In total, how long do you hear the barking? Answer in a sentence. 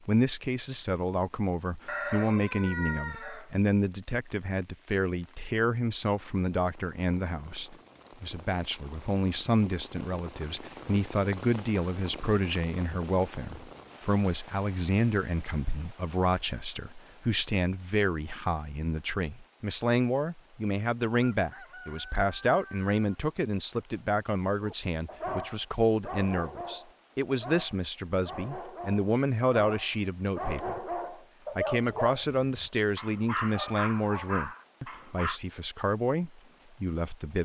The barking can be heard for 11 seconds in total.